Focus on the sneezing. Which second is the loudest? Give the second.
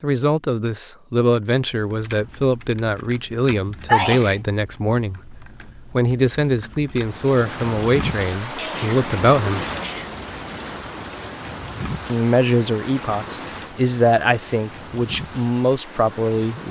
4 s.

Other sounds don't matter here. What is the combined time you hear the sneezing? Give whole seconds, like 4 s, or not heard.
2 s.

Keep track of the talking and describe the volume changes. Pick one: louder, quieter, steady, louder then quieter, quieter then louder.
steady.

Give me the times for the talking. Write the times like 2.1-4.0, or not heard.
0.0-9.7, 12.1-16.6.